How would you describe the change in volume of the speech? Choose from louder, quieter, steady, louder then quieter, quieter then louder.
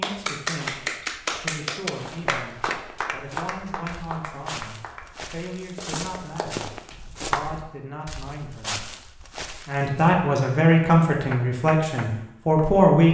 louder.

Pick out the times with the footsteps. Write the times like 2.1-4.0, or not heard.
0.6-10.1.